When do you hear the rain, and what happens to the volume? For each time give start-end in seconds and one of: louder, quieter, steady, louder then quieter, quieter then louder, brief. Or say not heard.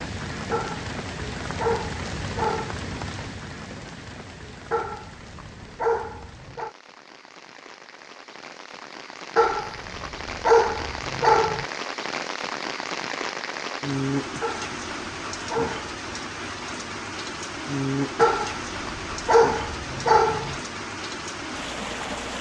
0.0-22.3 quieter then louder.